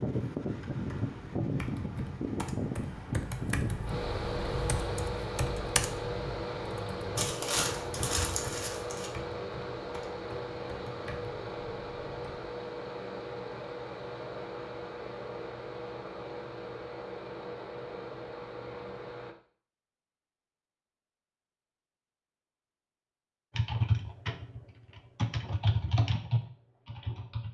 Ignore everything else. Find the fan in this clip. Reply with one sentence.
You can hear the fan from 0.0 to 19.4 s.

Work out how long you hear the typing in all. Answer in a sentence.
You can hear the typing for 16 seconds altogether.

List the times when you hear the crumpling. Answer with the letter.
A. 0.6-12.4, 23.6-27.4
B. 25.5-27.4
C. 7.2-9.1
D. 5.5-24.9
C.